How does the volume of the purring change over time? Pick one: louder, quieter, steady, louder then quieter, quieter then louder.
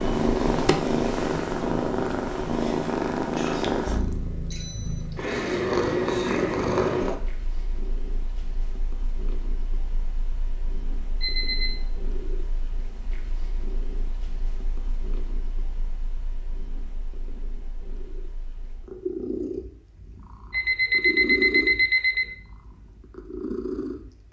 quieter then louder.